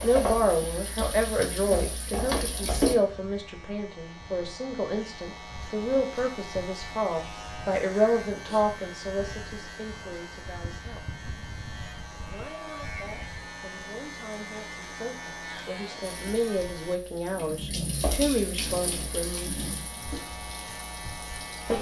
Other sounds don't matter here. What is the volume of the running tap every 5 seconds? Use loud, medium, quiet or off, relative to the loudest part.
loud, off, off, medium, medium.